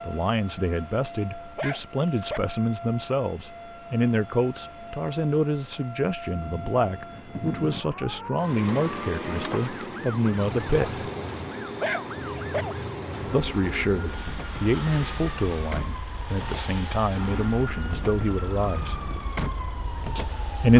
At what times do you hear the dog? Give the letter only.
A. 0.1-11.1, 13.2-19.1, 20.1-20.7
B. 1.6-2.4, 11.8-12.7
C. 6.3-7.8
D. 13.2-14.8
B.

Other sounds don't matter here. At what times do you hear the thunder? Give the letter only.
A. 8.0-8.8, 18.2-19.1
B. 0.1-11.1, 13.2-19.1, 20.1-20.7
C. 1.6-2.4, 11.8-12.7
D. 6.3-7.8
D.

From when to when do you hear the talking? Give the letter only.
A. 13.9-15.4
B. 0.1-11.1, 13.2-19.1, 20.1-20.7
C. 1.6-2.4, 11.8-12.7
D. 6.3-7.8
B.